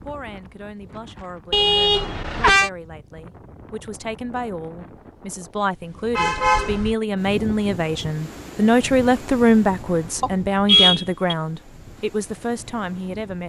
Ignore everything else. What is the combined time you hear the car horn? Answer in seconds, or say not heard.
3 s.